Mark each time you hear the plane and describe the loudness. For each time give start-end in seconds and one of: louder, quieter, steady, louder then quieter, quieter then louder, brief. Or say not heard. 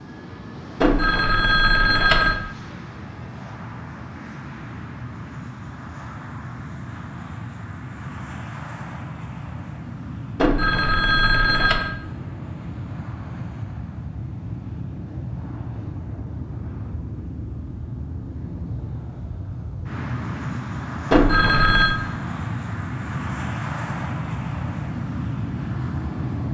0.0-26.4 louder.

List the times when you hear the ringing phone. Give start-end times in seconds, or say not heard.
0.8-2.4, 10.4-11.9, 21.1-21.9.